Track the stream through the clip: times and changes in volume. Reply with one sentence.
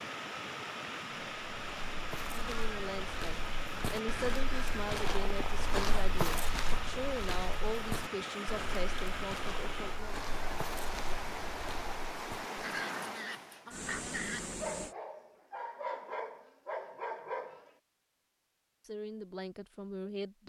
You can hear the stream from 0.0 to 14.9 s, at a steady volume.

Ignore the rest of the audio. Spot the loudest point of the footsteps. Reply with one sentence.
The loudest moment of the footsteps is at 6 seconds.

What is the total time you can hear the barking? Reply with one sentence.
You can hear the barking for 5 seconds altogether.